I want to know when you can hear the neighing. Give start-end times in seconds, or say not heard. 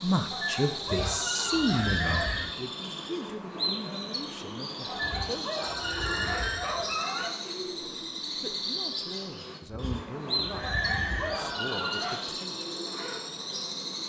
0.9-2.5, 5.0-6.8, 9.7-11.4.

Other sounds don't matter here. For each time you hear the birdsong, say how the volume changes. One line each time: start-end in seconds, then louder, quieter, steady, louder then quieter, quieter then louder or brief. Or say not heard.
0.0-14.0 steady.